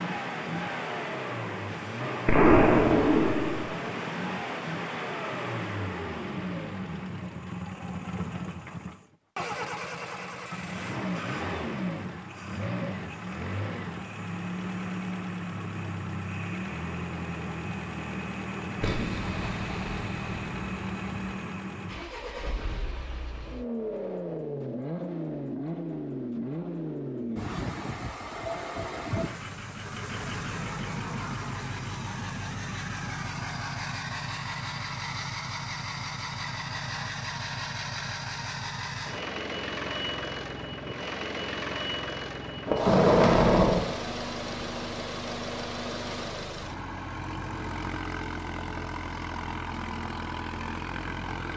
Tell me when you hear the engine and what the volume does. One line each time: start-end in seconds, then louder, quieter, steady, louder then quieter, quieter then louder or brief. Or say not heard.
0.0-51.5 steady.